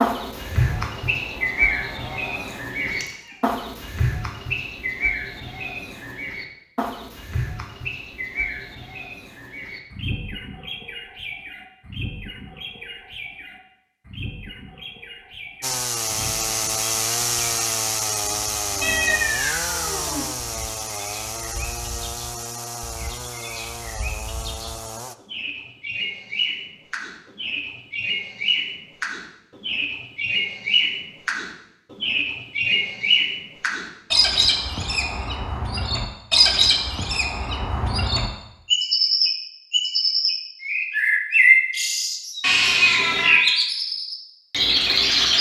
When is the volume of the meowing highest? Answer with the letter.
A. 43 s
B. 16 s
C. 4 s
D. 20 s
A.